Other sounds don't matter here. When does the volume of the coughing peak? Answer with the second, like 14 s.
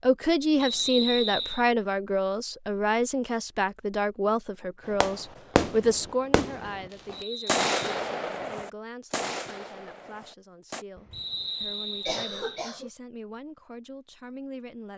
12 s.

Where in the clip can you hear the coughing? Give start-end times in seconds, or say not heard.
10.9-12.9.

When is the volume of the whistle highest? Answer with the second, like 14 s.
1 s.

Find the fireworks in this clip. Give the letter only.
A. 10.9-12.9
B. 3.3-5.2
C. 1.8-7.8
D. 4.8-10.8
D.